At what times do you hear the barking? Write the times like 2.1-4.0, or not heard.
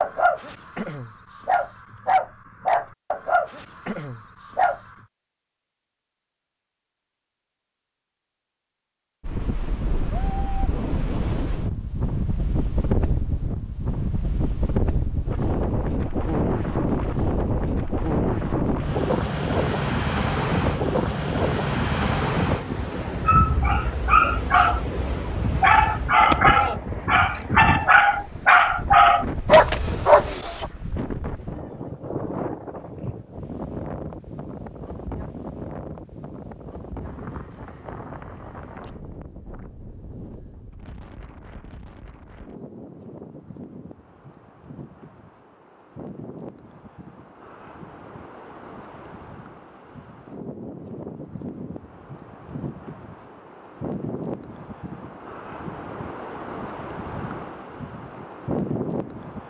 0.0-4.9, 23.2-24.8, 25.6-30.6.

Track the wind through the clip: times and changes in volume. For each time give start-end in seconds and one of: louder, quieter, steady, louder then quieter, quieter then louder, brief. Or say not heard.
9.2-59.4 quieter then louder.